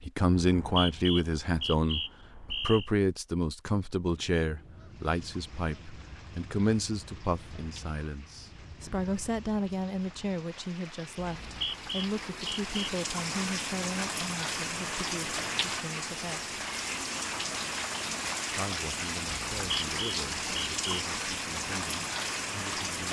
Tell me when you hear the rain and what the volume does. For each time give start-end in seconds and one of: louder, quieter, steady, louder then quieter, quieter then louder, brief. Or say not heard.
4.8-23.0 louder.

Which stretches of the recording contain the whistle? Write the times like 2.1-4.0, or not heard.
0.3-2.9, 11.2-12.9, 19.5-21.1.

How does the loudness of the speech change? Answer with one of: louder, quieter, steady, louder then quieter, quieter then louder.
quieter.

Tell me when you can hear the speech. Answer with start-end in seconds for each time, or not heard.
0.0-16.4, 18.5-23.0.